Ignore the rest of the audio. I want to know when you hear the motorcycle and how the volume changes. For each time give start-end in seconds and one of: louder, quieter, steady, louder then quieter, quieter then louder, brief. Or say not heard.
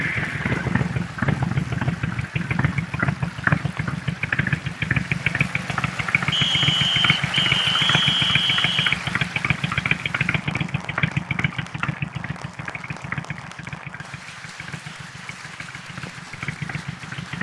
0.0-17.3 quieter.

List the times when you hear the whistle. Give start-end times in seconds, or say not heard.
6.3-8.9.